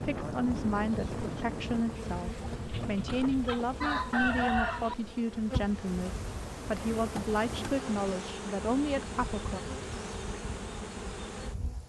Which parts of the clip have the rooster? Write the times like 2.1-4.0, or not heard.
1.9-5.0.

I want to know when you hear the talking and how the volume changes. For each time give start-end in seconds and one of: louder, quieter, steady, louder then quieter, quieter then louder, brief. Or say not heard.
0.1-9.6 steady.